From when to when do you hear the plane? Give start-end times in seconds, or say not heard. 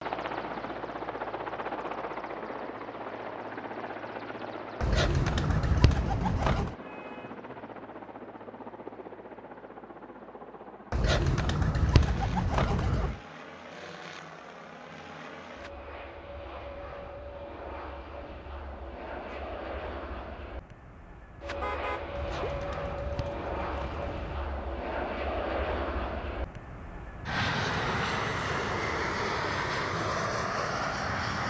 0.0-31.4.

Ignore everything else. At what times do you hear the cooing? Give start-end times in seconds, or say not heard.
4.8-6.8, 10.9-13.2, 22.1-24.5.